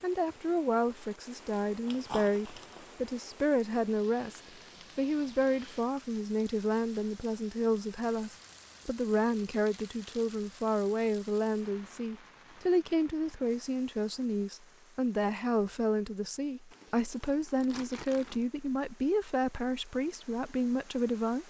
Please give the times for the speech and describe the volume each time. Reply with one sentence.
The speech can be heard from 0.0 to 21.4 s, at a steady volume.